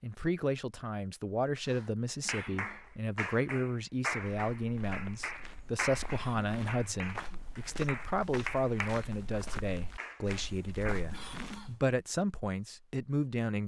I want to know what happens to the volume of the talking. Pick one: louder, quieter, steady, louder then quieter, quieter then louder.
steady.